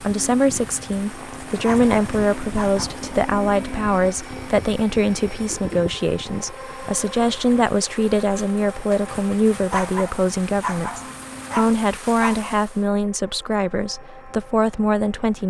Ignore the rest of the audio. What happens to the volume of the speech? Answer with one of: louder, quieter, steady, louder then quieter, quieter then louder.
steady.